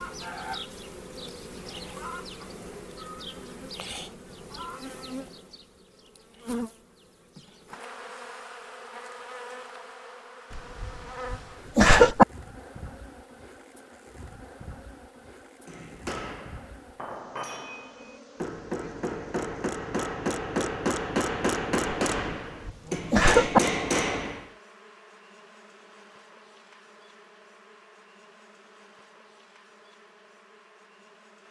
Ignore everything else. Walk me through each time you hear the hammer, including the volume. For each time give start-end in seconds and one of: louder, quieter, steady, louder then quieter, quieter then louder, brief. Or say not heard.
15.7-24.5 louder.